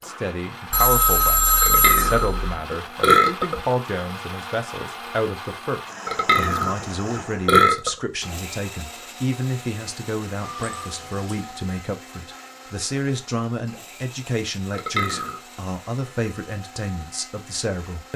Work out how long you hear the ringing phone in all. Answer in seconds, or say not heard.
3 s.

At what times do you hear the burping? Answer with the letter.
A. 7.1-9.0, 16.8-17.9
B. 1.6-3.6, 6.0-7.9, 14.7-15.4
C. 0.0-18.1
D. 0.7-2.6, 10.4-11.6
B.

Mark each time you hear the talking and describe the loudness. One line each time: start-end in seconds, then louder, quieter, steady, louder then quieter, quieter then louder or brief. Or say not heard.
0.0-18.1 steady.